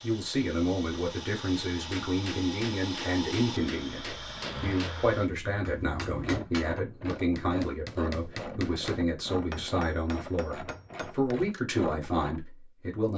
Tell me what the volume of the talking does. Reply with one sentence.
The loudness of the talking stays about the same.